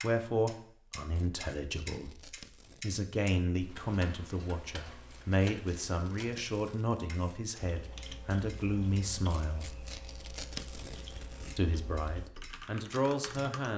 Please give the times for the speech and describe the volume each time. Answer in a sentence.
You can hear the speech from 0.0 to 9.7 s, at a steady volume; and briefly from 11.6 to 13.7 s.